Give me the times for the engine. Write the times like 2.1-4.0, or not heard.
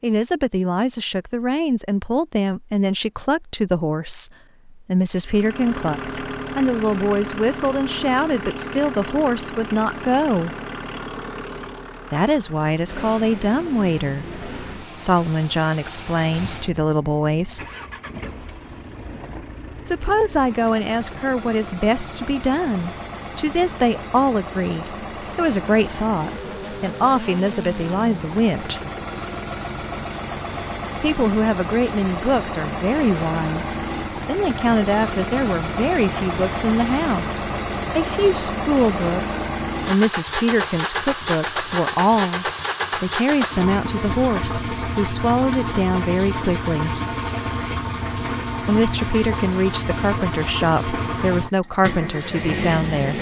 5.2-53.1.